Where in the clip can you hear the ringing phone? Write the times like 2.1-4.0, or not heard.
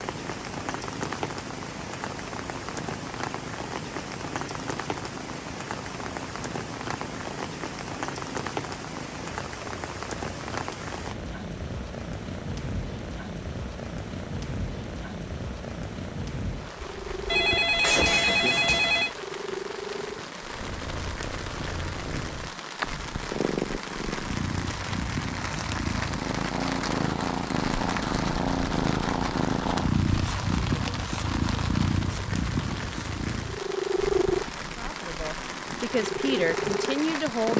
17.3-19.1.